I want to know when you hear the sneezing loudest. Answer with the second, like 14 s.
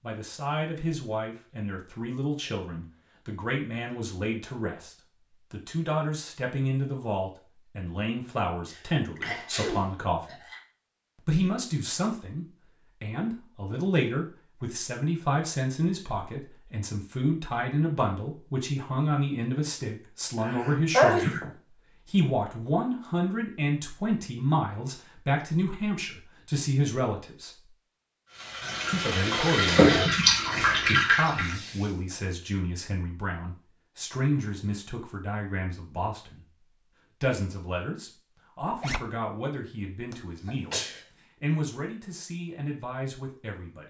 21 s.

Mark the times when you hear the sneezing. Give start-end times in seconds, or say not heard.
8.7-10.6, 20.4-21.5, 40.1-41.0.